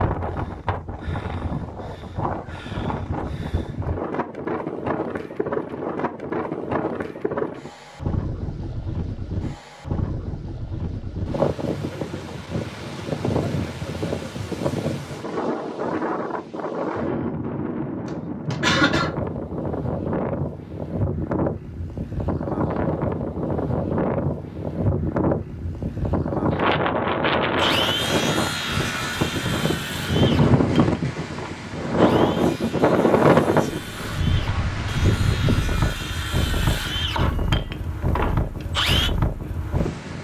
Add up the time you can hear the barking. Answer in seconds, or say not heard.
not heard.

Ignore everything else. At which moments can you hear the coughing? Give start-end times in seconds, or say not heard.
18.1-19.1.